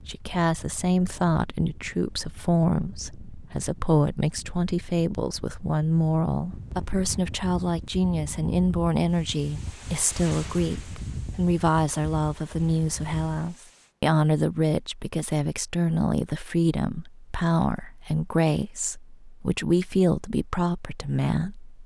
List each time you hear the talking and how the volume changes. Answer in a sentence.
You can hear the talking from 0.0 to 21.8 s, at a steady volume.